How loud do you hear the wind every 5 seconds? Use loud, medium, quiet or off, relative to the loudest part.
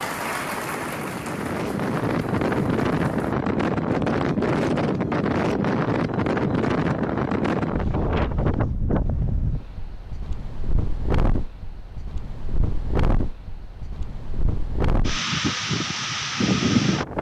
loud, loud, medium, loud.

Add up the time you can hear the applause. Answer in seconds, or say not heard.
3 s.